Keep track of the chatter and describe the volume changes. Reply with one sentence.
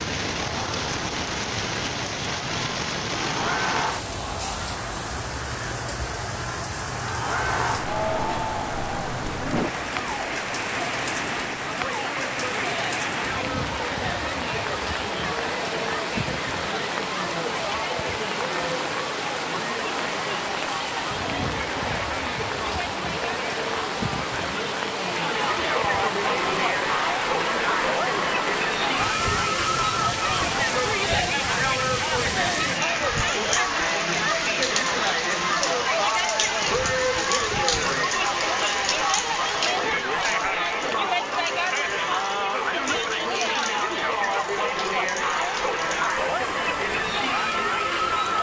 The volume of the chatter goes up.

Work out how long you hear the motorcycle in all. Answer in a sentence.
The motorcycle can't be heard in this clip.